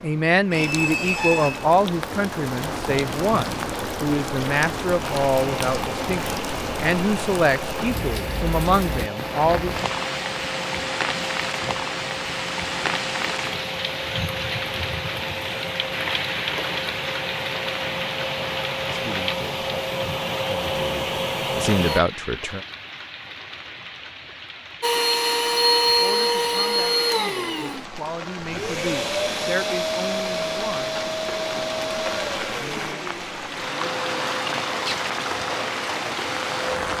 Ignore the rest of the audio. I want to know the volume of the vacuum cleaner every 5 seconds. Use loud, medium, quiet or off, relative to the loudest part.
off, medium, medium, medium, loud, loud, medium, medium.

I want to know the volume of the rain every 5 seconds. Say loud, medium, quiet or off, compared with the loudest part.
loud, loud, loud, loud, medium, medium, loud, loud.